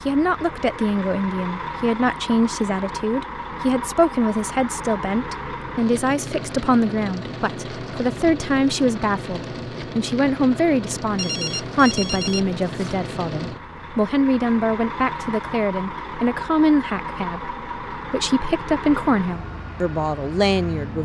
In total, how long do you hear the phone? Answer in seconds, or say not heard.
2 s.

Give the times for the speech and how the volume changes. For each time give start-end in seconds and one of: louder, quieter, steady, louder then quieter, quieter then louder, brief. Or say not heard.
0.1-21.0 steady.